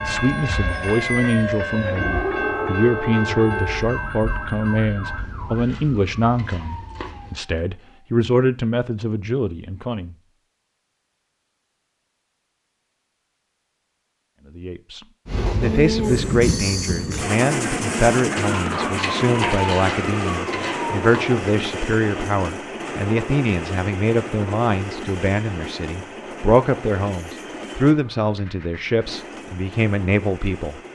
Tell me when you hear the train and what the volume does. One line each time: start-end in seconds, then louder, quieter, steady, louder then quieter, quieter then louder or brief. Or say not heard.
0.0-7.4 quieter
15.2-30.8 quieter.